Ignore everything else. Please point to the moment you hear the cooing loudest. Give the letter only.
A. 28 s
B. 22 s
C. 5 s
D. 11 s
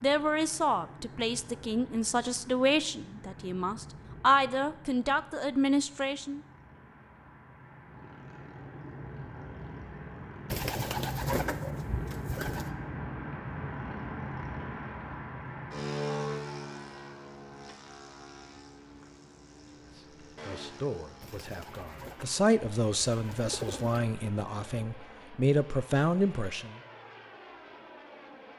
D.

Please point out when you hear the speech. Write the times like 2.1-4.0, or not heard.
0.0-6.4, 19.9-26.8.